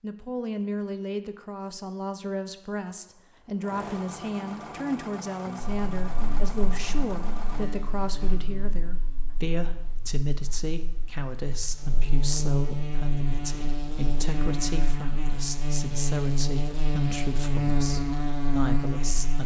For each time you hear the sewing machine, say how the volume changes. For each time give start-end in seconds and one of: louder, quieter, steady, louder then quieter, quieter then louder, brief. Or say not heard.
3.0-7.7 steady.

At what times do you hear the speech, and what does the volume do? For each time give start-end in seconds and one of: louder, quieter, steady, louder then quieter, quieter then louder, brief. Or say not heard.
0.0-19.4 steady.